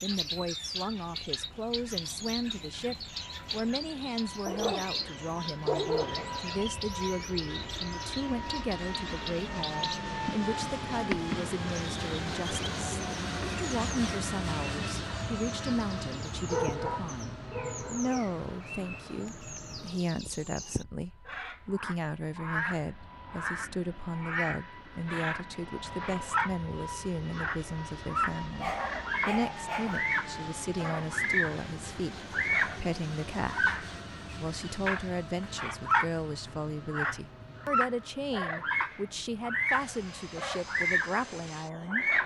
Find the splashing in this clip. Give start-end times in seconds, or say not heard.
not heard.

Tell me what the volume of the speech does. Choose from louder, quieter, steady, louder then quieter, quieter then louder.
steady.